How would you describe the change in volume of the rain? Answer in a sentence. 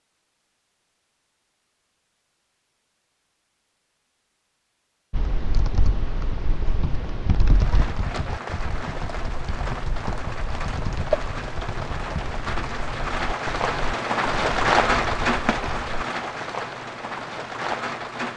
The volume of the rain goes up, then down.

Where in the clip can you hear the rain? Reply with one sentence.
The rain can be heard from 7.5 to 18.3 s.